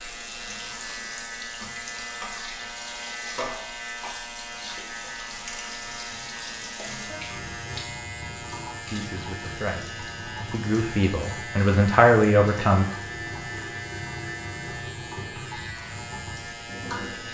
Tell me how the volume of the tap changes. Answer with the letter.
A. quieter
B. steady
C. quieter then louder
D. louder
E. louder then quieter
B.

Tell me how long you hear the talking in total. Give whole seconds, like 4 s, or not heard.
4 s.